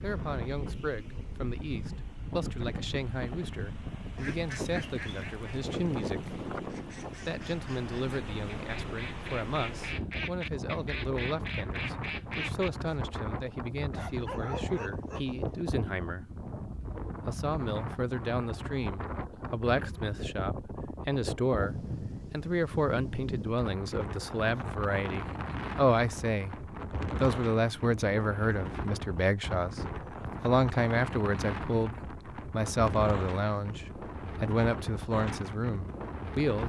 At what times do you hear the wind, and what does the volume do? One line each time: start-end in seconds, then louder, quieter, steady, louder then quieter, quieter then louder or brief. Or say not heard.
0.0-36.6 steady.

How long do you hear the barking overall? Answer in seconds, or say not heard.
2 s.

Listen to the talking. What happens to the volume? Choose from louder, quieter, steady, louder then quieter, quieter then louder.
louder.